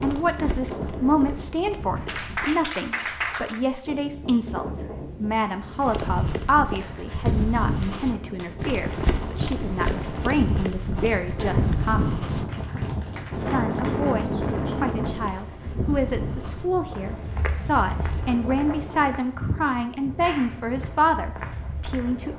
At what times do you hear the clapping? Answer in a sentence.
The clapping can be heard from 2.0 to 3.6 s, from 7.2 to 9.0 s, from 12.4 to 14.3 s and from 20.2 to 20.6 s.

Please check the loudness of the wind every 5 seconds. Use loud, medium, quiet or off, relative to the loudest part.
medium, medium, loud, medium, quiet.